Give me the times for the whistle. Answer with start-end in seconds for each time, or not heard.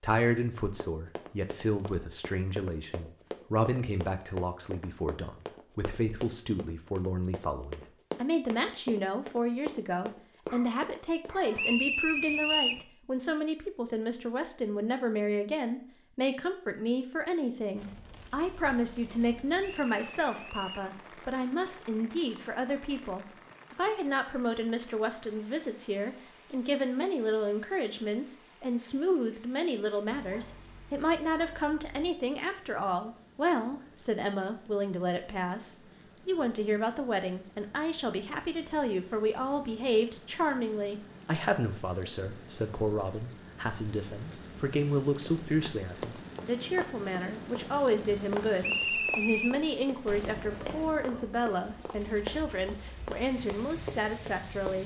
11.6-12.8, 19.6-20.9, 48.6-49.5.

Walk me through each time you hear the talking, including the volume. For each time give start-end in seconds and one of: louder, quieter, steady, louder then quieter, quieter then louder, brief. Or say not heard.
0.0-54.8 steady.